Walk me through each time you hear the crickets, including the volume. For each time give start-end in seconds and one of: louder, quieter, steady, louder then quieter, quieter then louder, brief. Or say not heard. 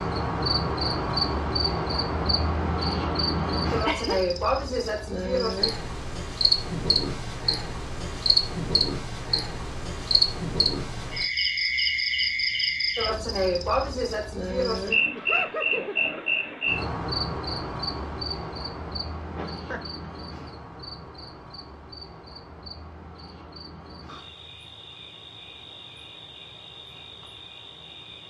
0.0-28.2 quieter.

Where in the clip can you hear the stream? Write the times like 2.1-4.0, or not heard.
not heard.